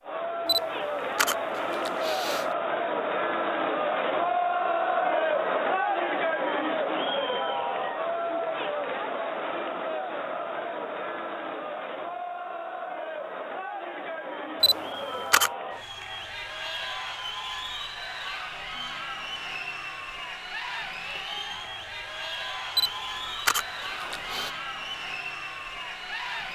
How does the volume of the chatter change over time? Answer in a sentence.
The volume of the chatter goes down.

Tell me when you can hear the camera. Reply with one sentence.
You can hear the camera from 0.5 to 2.5 s, from 14.6 to 15.5 s and from 22.8 to 24.5 s.